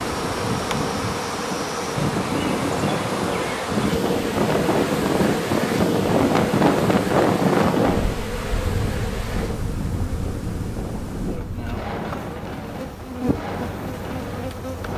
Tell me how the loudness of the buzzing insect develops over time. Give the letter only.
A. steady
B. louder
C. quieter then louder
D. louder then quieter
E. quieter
E.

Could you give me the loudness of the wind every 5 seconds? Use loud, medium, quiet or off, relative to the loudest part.
medium, loud, medium.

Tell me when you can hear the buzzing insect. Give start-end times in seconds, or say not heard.
0.0-14.9.